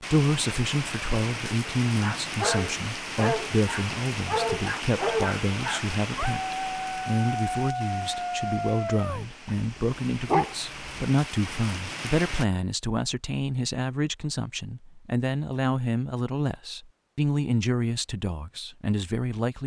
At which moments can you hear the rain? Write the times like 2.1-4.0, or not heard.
0.0-12.4.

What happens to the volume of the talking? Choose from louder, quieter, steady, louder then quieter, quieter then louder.
steady.